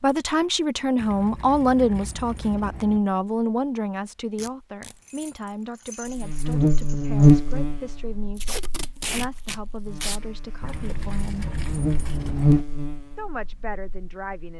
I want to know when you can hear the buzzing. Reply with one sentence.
The buzzing can be heard from 6.2 to 14.5 s.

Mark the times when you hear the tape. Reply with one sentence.
You can hear the tape from 4.3 to 5.0 s and from 8.3 to 10.2 s.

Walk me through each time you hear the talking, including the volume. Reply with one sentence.
The talking can be heard from 0.0 to 11.5 s, getting quieter; and briefly from 13.2 to 14.5 s.